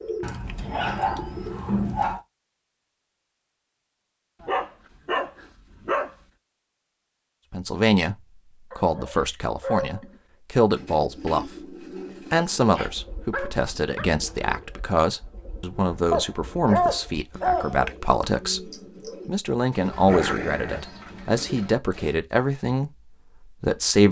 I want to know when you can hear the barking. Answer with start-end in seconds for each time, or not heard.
0.2-2.2, 4.4-6.1, 8.7-10.2, 12.6-14.1, 16.1-17.9, 20.1-20.9.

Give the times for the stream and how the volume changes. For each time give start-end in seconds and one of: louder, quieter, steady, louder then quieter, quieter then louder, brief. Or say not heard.
not heard.